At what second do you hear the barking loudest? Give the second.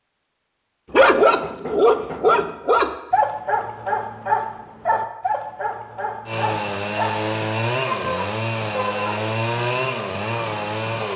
1 s.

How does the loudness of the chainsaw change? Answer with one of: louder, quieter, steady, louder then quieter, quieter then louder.
steady.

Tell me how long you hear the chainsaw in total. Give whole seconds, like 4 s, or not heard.
5 s.